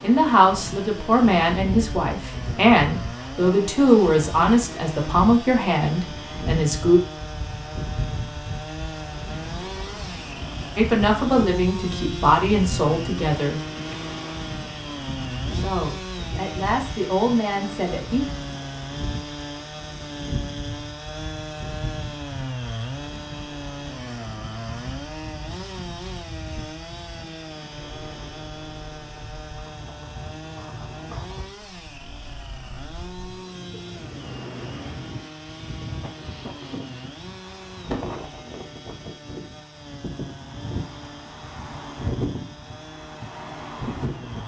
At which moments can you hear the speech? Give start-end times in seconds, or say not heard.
0.0-7.0, 10.8-13.6, 15.5-18.2.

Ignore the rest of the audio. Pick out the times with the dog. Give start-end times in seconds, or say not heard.
not heard.